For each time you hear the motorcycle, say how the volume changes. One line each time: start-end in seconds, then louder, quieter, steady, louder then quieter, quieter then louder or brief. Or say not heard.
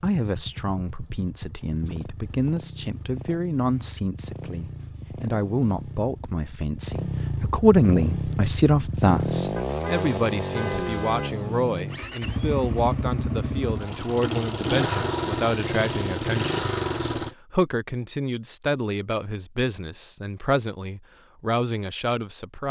0.1-17.4 louder.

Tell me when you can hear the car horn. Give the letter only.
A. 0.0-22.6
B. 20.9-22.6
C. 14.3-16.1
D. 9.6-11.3
D.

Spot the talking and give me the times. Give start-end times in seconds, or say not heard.
0.0-22.6.